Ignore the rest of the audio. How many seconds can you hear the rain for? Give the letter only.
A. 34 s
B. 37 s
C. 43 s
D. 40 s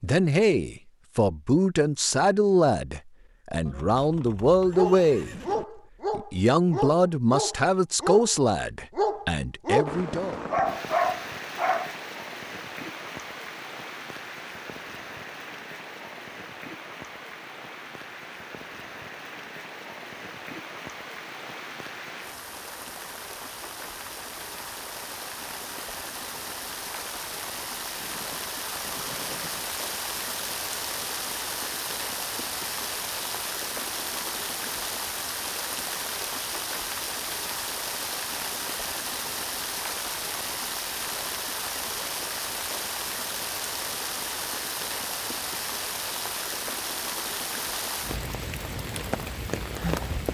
D.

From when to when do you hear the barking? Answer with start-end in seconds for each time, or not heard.
4.7-11.9.